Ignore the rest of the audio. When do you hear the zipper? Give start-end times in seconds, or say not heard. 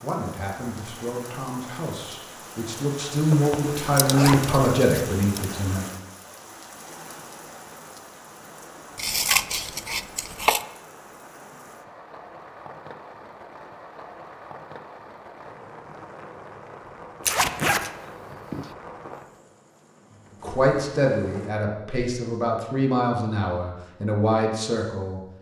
3.3-4.6, 17.2-17.8.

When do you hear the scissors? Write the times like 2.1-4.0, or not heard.
3.8-5.5, 8.9-10.7, 17.2-18.7.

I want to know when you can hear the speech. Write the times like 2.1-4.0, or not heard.
0.0-5.8, 20.4-25.2.